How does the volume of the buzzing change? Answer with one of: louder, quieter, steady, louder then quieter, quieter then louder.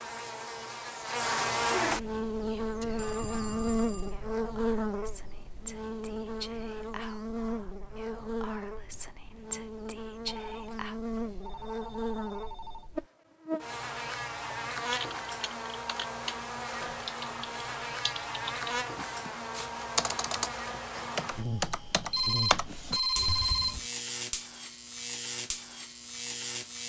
quieter.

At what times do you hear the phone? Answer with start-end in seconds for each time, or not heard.
3.0-4.2, 10.2-12.9, 22.1-23.9.